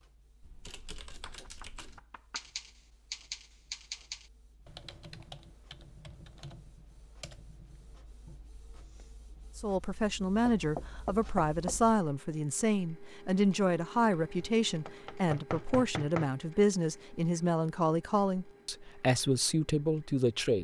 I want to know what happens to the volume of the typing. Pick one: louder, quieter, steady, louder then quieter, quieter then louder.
louder then quieter.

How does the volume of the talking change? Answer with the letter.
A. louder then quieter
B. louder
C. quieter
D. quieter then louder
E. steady
E.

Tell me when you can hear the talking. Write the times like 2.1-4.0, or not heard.
9.6-20.5.